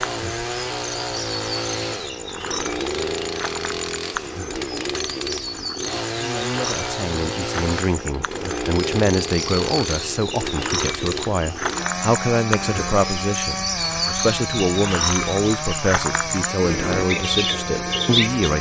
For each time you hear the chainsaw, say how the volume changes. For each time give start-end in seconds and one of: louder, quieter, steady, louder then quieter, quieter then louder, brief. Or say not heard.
0.0-18.5 steady.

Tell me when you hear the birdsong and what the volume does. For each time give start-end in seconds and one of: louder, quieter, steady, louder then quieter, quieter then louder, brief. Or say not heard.
0.0-18.5 louder.